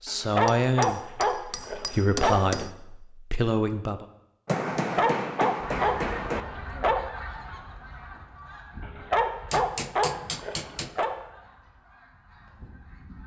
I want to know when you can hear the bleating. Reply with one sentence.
You can't hear the bleating here.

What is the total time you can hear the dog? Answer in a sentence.
You can hear the dog for 7 seconds altogether.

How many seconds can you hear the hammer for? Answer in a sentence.
The hammer can be heard for 6 seconds in total.